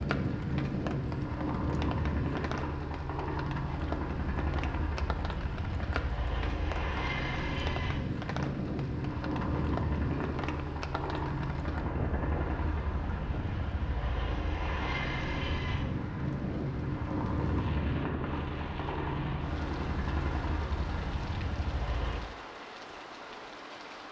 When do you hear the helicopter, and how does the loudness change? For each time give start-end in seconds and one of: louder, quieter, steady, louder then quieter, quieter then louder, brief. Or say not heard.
0.0-22.3 steady.